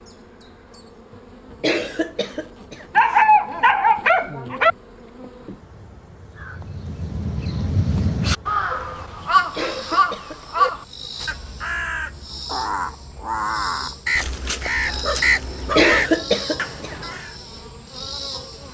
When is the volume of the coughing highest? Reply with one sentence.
The loudest moment of the coughing is at 16 seconds.